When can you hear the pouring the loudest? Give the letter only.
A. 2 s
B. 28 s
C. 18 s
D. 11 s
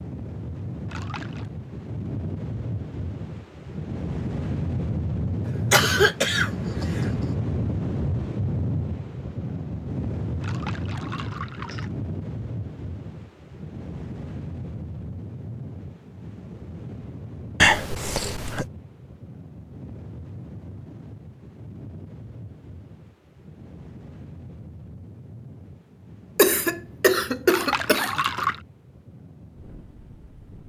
B.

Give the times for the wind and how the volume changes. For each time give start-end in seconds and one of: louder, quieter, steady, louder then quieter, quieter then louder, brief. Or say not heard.
0.0-30.6 quieter.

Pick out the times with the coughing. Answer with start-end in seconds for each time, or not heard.
5.5-7.2, 17.6-18.6, 26.4-28.2.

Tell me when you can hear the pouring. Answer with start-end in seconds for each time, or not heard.
0.8-1.5, 10.4-11.9, 27.4-28.6.